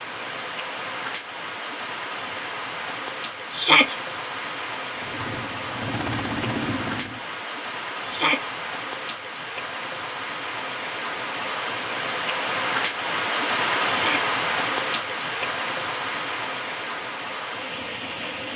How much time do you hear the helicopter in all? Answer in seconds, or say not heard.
2 s.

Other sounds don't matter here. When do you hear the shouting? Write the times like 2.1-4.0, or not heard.
3.5-4.0, 8.1-8.5, 13.8-14.3.